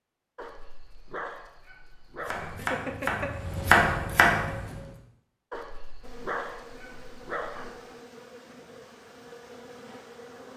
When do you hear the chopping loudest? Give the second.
4 s.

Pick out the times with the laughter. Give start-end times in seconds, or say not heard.
2.5-3.4.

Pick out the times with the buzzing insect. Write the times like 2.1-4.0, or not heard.
6.0-10.5.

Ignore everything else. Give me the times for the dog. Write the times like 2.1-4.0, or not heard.
0.3-2.5, 5.5-7.7.